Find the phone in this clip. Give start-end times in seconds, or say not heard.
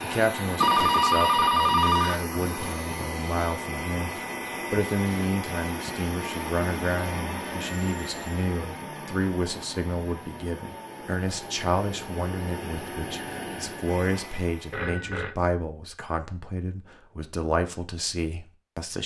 0.6-2.2, 7.8-8.3, 14.7-15.3.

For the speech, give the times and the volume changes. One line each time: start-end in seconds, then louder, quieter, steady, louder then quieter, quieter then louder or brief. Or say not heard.
0.0-19.0 steady.